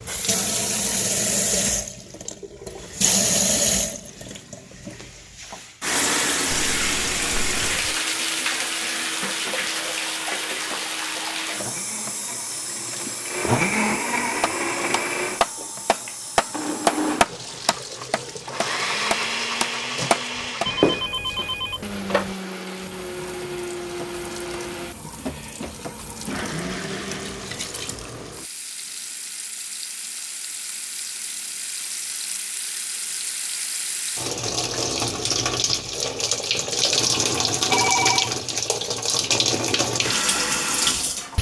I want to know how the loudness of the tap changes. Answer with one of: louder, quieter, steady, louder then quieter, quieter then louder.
quieter then louder.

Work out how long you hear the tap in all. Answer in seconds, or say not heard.
41 s.